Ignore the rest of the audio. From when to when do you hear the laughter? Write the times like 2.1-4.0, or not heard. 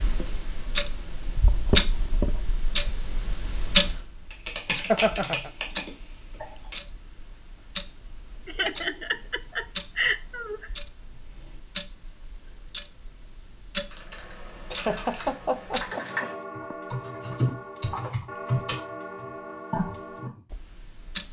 4.7-5.5, 8.4-10.7, 14.7-16.8.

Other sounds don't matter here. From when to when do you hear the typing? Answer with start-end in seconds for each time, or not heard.
4.3-6.8, 13.8-20.4.